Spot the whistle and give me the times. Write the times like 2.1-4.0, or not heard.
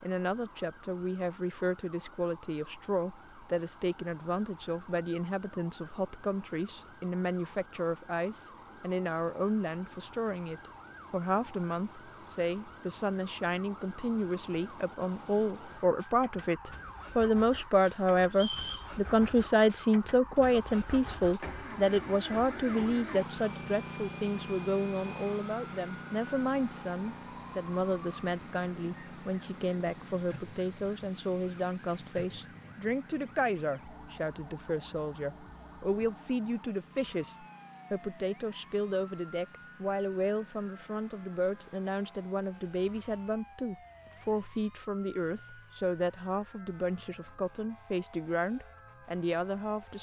18.3-18.9.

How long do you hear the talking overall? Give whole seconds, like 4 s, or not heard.
50 s.